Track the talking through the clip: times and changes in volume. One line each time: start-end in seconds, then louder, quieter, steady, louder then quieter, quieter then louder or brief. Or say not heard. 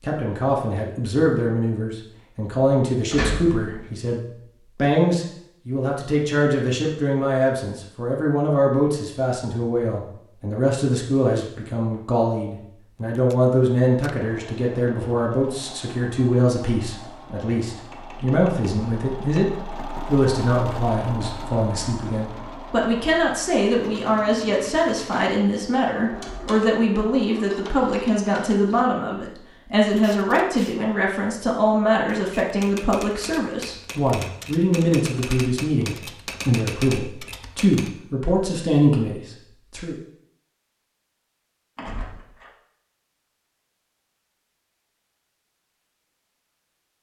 0.0-40.0 steady.